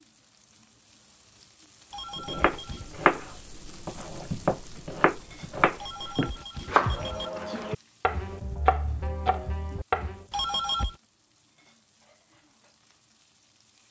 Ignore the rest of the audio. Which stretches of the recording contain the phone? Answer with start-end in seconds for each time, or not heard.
1.9-2.9, 5.8-7.3, 10.3-10.9.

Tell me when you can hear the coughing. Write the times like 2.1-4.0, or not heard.
not heard.